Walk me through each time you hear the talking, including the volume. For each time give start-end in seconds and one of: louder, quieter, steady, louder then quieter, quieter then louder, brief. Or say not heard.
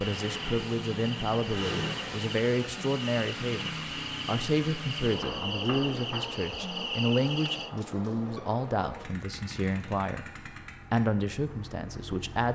0.0-12.5 steady.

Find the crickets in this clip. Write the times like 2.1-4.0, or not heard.
0.0-7.7.